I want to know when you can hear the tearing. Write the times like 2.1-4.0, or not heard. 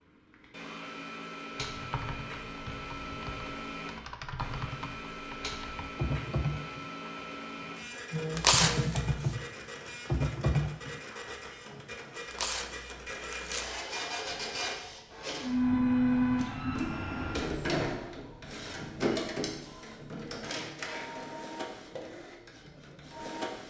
8.3-9.3, 12.3-13.8.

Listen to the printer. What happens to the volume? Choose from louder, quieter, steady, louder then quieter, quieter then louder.
louder then quieter.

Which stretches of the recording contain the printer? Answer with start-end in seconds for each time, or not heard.
0.1-23.6.